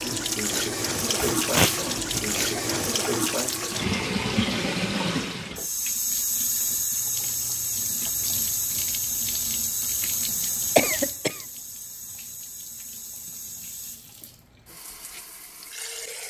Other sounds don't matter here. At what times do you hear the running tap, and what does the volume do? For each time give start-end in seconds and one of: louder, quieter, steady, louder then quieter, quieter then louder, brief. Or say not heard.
0.0-16.2 quieter.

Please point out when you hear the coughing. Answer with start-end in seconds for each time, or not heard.
1.2-2.9, 10.8-11.4.